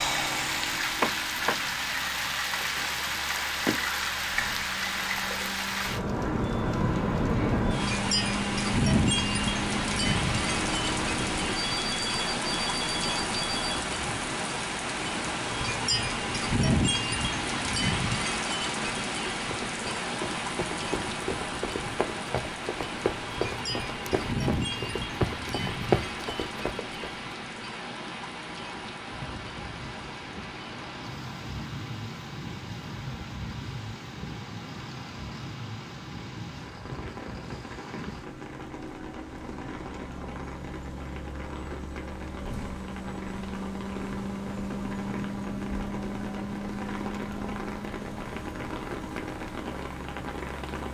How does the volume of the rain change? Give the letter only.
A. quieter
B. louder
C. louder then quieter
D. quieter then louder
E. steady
A.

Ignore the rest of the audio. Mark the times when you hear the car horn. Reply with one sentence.
You can't hear the car horn here.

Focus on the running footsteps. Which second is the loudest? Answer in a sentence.
The loudest moment of the running footsteps is at 26 seconds.